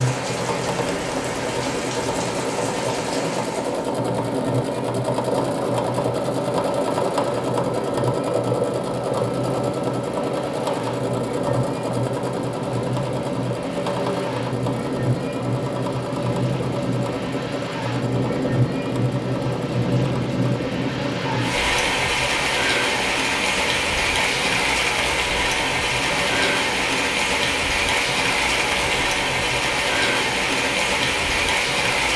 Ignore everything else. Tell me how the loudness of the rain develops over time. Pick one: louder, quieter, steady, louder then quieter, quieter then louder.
louder.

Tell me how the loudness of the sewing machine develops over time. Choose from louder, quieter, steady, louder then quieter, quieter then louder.
quieter.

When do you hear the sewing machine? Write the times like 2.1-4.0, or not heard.
0.0-32.1.